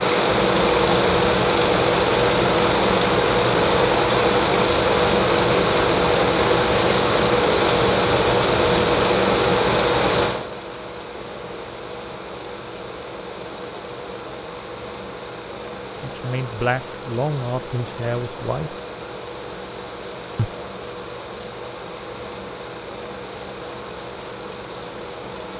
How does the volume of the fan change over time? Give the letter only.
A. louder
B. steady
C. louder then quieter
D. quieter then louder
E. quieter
E.